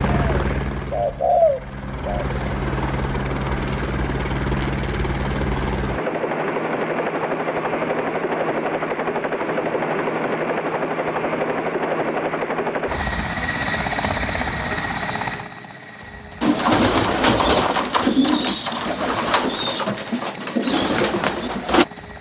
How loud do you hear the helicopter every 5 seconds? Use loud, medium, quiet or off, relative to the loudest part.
loud, loud, loud, medium, quiet.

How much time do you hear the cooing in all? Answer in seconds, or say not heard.
8 s.